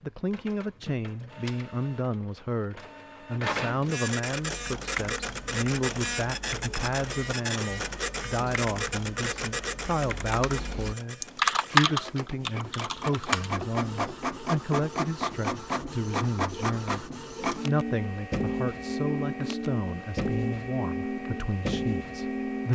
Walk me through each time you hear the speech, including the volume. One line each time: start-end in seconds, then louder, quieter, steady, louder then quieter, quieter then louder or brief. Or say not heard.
0.0-22.7 steady.